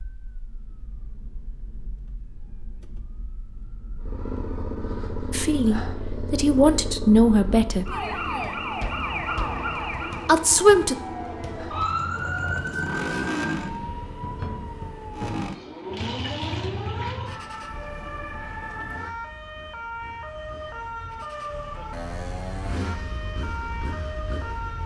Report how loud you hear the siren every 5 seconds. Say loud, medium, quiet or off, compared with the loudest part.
quiet, loud, loud, medium, medium.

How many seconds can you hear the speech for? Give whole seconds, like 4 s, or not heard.
3 s.